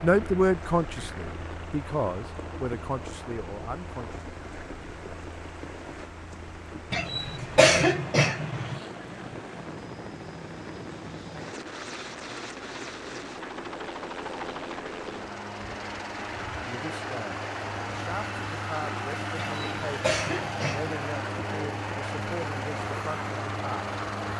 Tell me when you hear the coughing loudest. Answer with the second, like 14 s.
8 s.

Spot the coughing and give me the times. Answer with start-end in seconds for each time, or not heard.
6.9-8.8, 19.4-20.9.